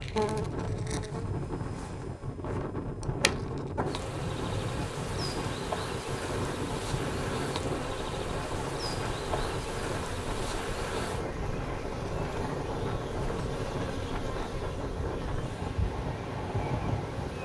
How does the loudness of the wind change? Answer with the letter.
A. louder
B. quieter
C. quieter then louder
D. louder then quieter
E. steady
E.